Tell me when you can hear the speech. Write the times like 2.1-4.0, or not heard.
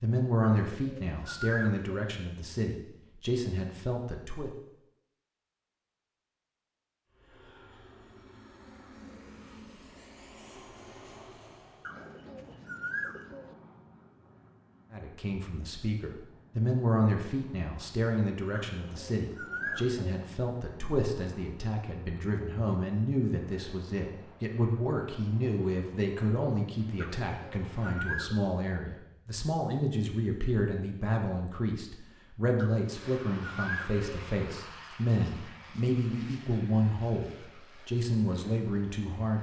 0.0-4.5, 14.9-39.3.